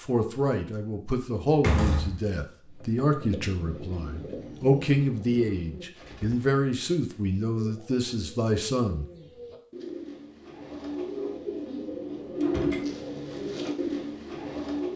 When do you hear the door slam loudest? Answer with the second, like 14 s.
2 s.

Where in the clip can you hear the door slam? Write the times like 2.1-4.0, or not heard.
1.5-2.3, 12.4-12.8.